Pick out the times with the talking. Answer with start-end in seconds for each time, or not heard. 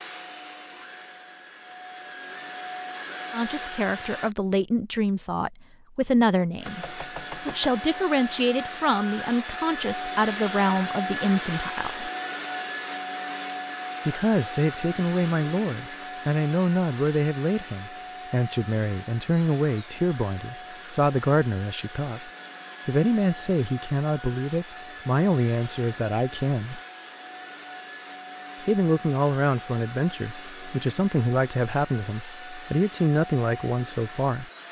3.3-12.1, 14.1-26.8, 28.6-34.5.